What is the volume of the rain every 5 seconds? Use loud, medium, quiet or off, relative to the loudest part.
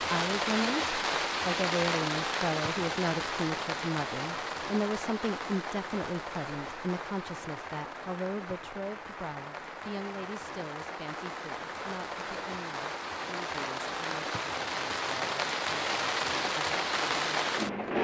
loud, medium, medium, loud.